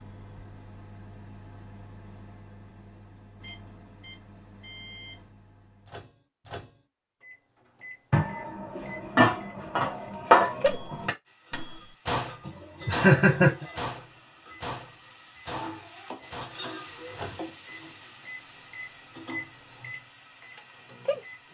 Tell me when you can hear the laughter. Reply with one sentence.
You can hear the laughter from 12.4 to 13.7 s.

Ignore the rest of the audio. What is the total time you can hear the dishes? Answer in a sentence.
You can hear the dishes for 3 seconds altogether.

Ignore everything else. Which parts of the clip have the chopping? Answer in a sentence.
You can't hear the chopping here.